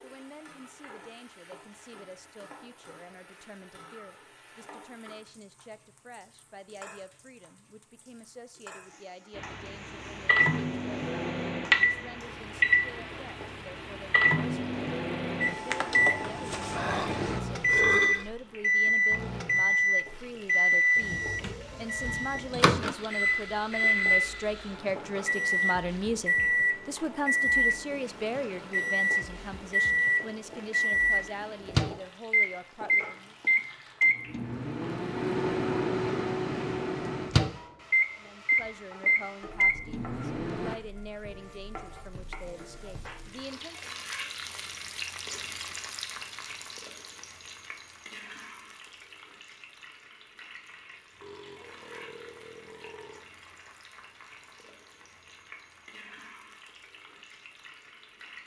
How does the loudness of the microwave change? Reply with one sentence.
The loudness of the microwave stays about the same.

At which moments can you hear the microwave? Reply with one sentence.
You can hear the microwave from 9.3 to 40.8 s.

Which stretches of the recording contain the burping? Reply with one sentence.
The burping can be heard from 16.6 to 18.3 s and from 51.2 to 53.2 s.